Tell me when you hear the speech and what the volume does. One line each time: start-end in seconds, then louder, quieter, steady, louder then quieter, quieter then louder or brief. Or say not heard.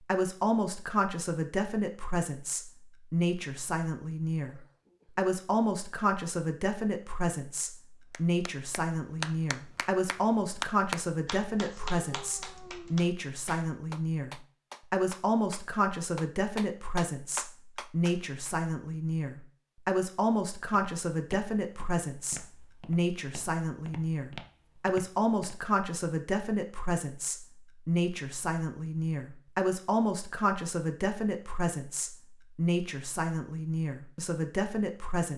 0.0-35.3 steady.